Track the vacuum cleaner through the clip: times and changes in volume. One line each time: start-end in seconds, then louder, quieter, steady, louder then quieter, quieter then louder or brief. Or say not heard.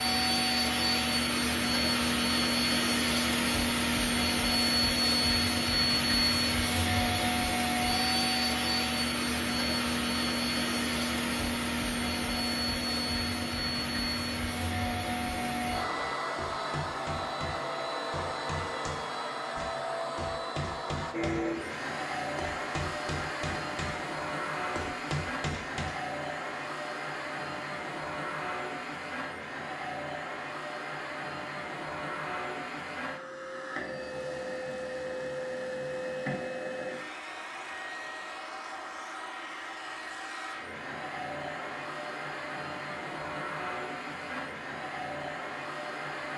0.0-46.3 quieter.